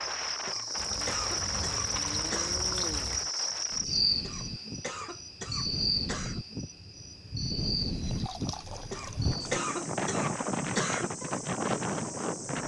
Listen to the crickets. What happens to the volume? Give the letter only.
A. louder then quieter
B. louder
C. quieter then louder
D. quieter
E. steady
D.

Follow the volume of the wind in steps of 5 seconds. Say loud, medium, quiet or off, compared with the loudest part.
medium, medium, loud.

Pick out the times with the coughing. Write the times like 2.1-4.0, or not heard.
0.5-2.6, 4.2-6.4, 8.9-11.1.